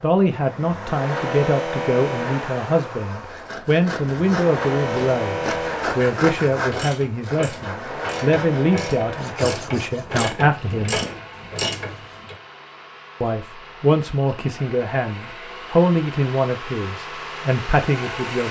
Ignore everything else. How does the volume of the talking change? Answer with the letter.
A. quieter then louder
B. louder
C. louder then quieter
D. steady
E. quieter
D.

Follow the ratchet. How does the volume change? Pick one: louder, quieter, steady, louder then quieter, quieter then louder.
louder.